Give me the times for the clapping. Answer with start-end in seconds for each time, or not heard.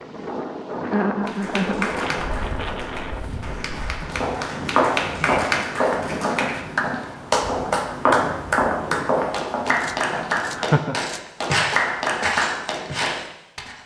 1.2-13.7.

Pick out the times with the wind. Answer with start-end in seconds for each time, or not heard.
0.0-9.3.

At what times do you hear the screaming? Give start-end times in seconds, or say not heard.
not heard.